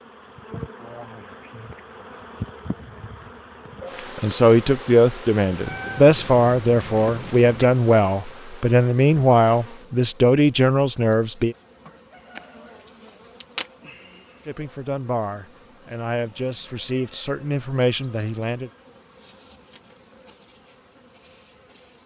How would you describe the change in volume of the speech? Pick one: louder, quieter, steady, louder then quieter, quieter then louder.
quieter.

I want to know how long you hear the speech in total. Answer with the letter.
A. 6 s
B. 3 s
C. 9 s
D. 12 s
D.